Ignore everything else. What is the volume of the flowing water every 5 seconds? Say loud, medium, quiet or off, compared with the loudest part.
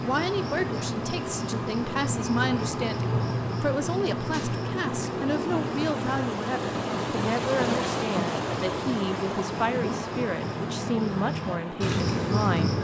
medium, loud, medium.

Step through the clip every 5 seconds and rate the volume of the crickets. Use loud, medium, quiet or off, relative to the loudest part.
loud, medium, loud.